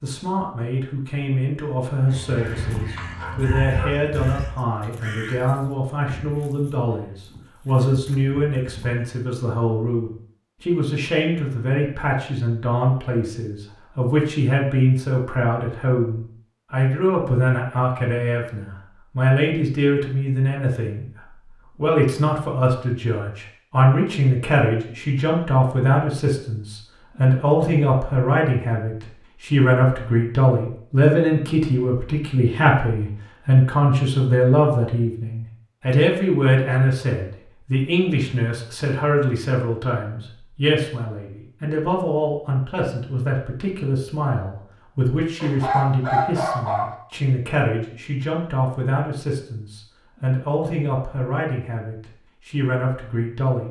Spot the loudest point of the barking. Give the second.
46 s.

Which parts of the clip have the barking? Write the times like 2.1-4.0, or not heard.
2.0-4.0, 45.4-47.0.